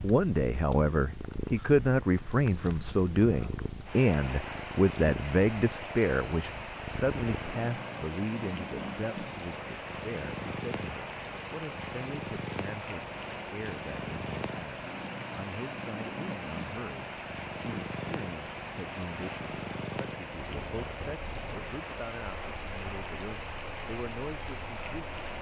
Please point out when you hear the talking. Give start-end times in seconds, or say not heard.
0.0-25.1.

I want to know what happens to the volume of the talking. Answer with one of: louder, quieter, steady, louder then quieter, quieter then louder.
quieter.